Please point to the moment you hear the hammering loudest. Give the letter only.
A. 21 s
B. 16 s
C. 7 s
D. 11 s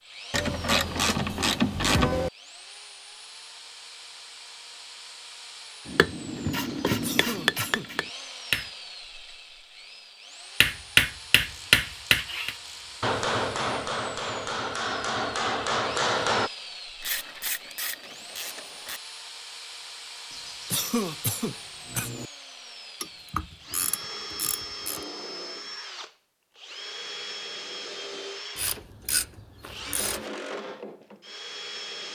D.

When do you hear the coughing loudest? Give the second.
21 s.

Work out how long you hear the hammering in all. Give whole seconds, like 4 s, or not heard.
9 s.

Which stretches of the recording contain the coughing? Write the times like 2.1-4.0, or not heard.
6.8-7.9, 20.3-22.3.